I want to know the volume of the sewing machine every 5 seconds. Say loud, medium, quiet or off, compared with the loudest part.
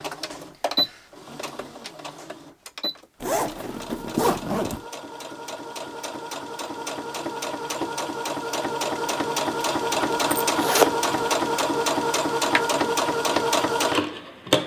medium, medium, loud.